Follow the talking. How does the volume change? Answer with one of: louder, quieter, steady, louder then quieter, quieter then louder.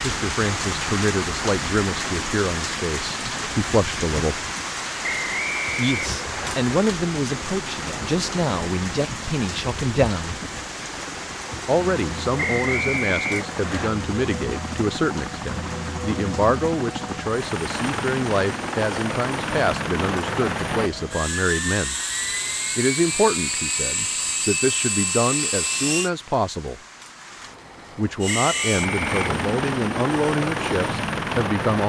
steady.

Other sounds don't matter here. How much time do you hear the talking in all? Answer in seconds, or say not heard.
27 s.